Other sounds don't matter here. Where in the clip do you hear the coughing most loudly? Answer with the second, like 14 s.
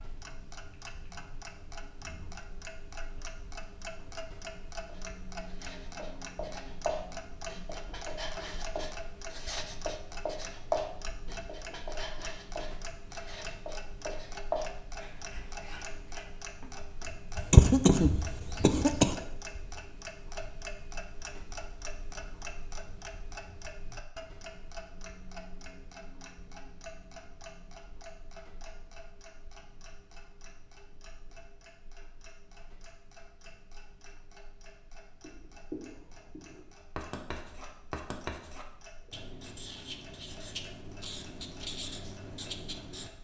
18 s.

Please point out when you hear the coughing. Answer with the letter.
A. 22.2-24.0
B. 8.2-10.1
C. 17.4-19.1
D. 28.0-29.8
C.